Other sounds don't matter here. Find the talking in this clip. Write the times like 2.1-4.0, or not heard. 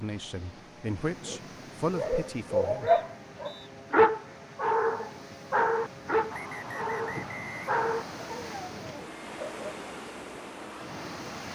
0.0-2.9.